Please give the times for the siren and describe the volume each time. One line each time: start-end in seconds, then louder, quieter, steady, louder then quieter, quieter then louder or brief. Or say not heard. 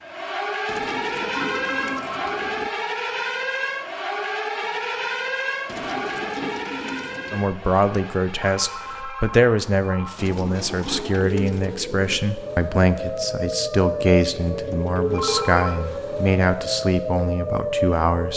0.0-18.3 quieter then louder.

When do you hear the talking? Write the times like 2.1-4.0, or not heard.
7.3-18.3.